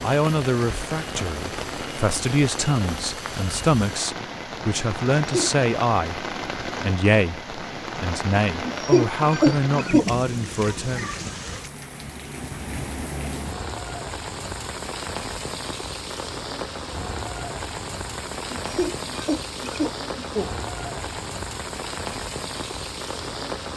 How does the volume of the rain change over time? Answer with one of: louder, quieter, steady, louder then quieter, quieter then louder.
steady.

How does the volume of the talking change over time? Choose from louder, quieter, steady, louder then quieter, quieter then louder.
steady.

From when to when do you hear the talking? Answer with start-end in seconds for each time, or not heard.
0.0-11.1.